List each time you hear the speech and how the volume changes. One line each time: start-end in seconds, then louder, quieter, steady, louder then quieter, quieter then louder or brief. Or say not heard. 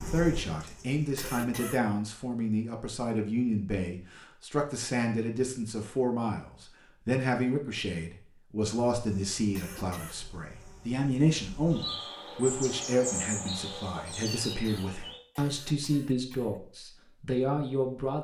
0.0-18.2 steady.